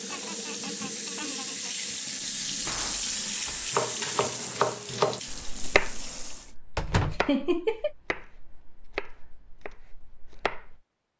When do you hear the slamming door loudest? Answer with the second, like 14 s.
7 s.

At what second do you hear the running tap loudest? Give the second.
3 s.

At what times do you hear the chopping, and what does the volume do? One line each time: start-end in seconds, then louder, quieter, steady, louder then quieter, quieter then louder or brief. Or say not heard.
3.7-10.8 quieter.